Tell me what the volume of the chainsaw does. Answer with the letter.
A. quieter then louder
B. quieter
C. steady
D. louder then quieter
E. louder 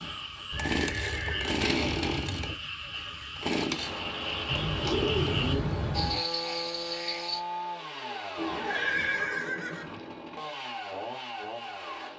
B.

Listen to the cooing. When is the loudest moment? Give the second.
5 s.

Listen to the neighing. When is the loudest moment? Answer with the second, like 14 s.
9 s.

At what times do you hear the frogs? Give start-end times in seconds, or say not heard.
0.0-7.4.